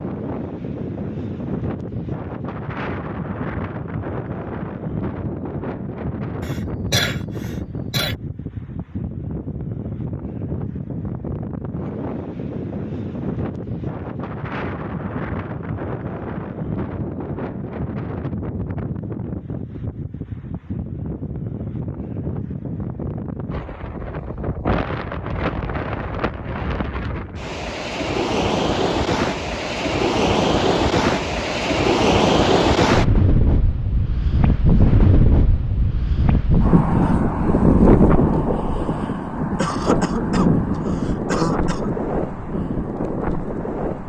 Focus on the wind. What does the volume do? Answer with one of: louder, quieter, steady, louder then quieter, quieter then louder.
louder.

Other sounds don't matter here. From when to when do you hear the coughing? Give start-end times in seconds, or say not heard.
6.4-8.2, 39.5-42.0.